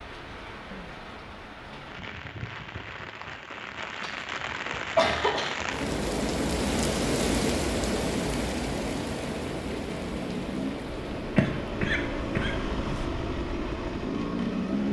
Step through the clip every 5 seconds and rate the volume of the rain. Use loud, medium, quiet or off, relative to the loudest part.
medium, loud, medium.